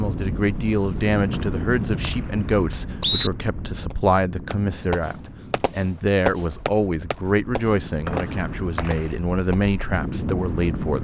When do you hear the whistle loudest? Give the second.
3 s.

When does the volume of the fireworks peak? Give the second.
6 s.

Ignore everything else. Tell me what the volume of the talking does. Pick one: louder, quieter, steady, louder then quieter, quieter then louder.
steady.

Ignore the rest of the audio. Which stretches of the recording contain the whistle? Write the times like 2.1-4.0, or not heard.
1.3-3.3, 8.1-9.0.